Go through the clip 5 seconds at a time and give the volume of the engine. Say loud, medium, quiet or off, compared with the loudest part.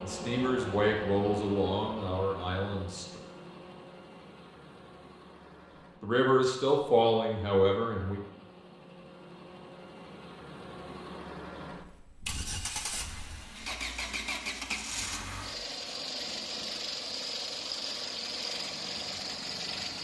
medium, quiet, loud, loud.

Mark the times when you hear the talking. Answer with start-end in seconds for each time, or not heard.
0.0-3.0, 6.0-8.2.